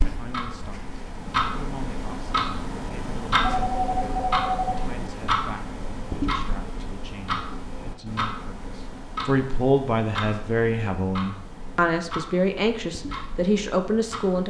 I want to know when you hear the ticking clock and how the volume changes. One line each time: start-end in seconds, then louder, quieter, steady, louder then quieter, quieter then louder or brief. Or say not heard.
0.0-14.4 quieter.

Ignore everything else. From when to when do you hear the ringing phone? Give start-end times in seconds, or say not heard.
3.4-4.8.